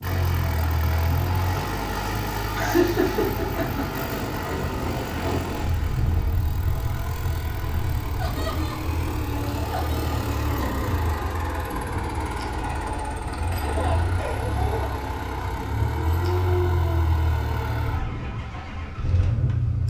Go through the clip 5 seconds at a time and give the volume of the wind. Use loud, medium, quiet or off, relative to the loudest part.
loud, loud, medium, medium.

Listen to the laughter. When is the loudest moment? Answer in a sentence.
The loudest moment of the laughter is at 3 seconds.